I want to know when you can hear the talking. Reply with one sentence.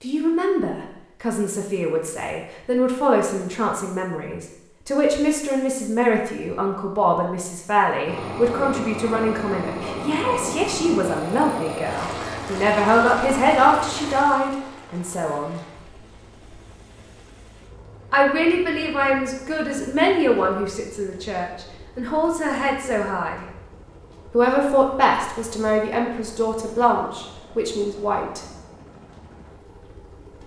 The talking can be heard from 0.0 to 15.6 s, from 18.1 to 23.4 s and from 24.3 to 28.4 s.